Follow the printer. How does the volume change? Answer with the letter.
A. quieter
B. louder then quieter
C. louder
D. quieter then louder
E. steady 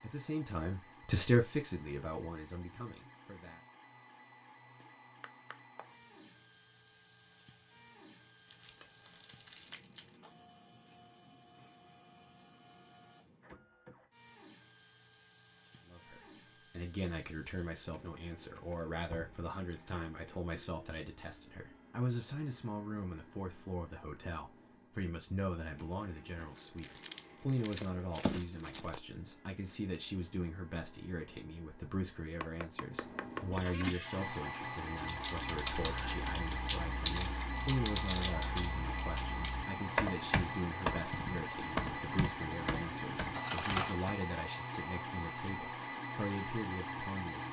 C.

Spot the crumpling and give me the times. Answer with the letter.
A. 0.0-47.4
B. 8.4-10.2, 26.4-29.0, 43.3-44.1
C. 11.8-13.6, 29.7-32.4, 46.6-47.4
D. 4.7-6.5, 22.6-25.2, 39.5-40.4
B.